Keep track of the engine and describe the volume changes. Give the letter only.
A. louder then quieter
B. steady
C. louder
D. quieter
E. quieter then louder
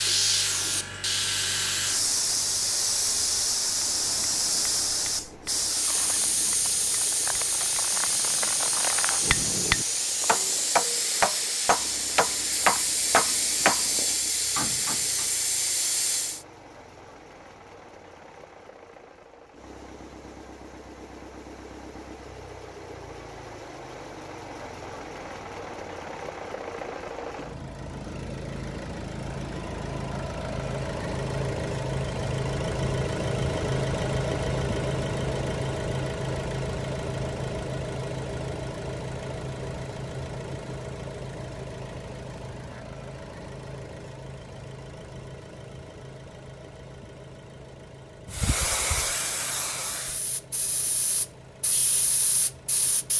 A.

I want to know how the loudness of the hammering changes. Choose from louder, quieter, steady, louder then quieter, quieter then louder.
louder.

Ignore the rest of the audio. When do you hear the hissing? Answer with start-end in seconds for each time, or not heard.
0.0-16.4, 48.2-53.1.